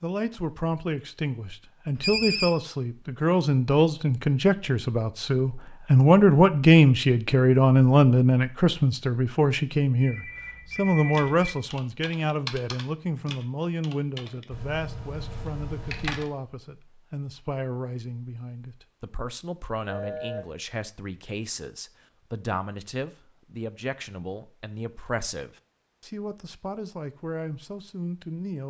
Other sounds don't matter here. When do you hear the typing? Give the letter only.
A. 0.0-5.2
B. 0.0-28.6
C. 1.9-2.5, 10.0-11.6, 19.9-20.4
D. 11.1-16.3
D.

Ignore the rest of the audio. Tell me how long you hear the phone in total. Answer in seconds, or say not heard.
3 s.